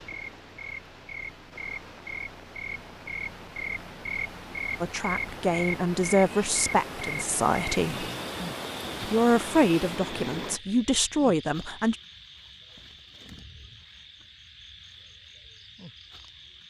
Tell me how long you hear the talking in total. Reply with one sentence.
The talking can be heard for 6 seconds in total.